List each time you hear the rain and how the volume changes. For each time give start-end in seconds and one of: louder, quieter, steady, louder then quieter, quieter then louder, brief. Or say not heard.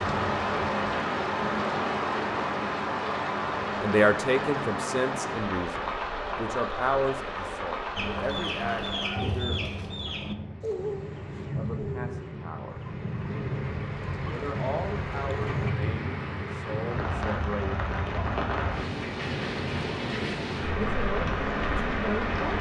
0.0-22.5 quieter then louder.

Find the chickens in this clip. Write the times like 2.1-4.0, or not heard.
8.0-15.8.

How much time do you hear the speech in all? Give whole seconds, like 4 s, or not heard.
13 s.